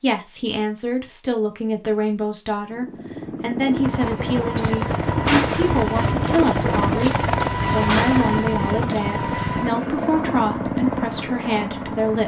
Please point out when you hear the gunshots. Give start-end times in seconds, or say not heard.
4.5-9.1.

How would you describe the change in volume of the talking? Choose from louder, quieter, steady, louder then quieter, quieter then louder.
steady.